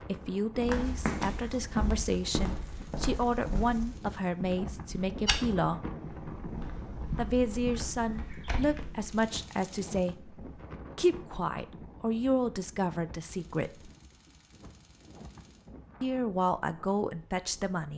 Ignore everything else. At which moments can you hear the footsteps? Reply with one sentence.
You can hear the footsteps from 0.6 to 9.2 s.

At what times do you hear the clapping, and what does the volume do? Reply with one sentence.
The clapping can't be heard in this clip.